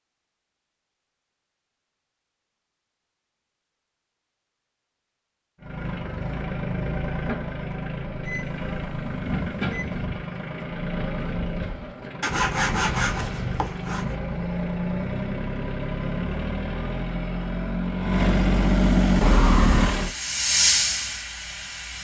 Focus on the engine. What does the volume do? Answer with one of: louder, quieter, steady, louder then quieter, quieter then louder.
louder.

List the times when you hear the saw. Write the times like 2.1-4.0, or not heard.
12.2-14.2.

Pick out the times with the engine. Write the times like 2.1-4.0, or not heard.
5.6-20.1.